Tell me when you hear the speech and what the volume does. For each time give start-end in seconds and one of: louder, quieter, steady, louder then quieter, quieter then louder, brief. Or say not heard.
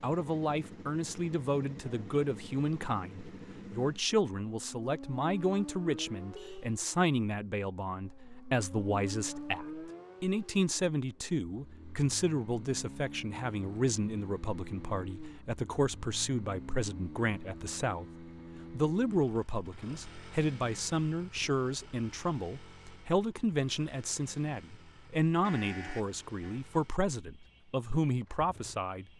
0.0-29.1 steady.